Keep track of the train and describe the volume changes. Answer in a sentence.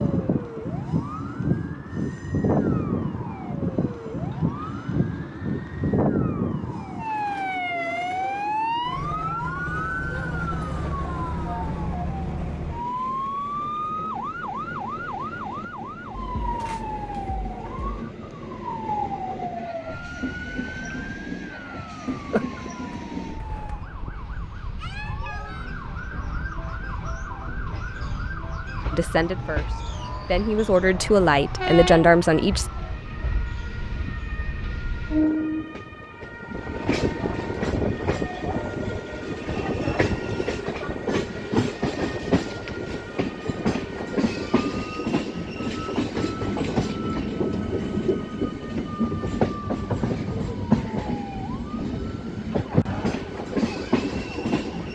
The volume of the train goes up.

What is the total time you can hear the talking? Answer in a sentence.
The talking can be heard for 4 seconds in total.